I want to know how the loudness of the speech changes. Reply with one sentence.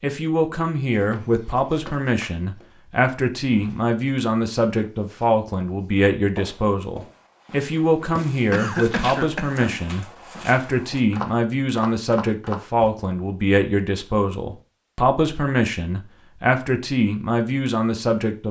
The volume of the speech stays about the same.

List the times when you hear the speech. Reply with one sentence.
You can hear the speech from 0.0 to 18.4 s.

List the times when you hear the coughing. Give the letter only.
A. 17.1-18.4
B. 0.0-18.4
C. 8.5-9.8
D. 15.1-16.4
C.